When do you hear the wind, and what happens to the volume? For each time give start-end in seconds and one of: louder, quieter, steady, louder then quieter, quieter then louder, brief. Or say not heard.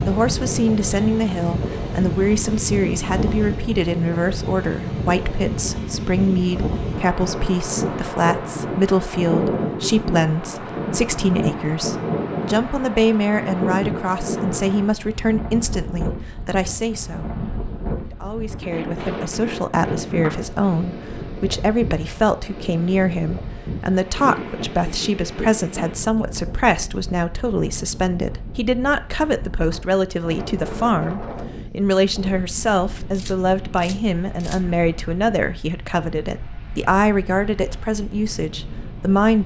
0.0-39.4 quieter.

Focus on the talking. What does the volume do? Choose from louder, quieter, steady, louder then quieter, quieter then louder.
steady.